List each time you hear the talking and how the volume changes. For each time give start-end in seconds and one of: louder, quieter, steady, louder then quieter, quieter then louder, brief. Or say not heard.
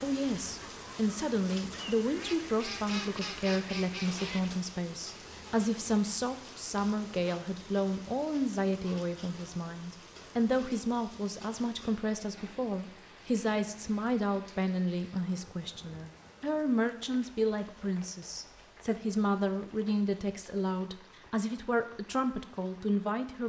0.0-23.4 steady.